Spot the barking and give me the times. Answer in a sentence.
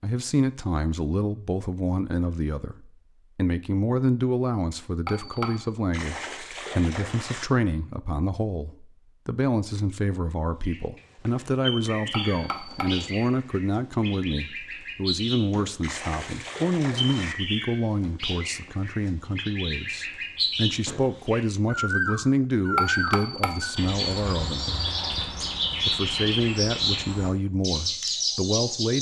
The barking can't be heard in this clip.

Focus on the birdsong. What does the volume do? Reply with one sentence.
The loudness of the birdsong goes up.